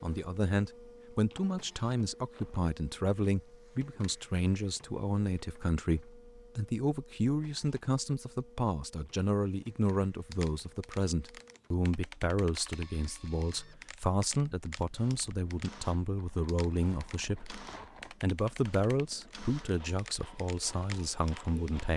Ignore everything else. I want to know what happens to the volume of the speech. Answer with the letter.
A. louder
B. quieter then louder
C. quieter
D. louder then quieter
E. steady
E.